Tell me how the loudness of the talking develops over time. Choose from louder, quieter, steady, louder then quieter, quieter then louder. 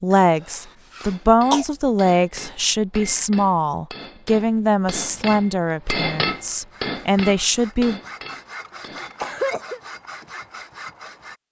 steady.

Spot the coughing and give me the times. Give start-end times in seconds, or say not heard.
0.9-1.6, 8.8-9.8.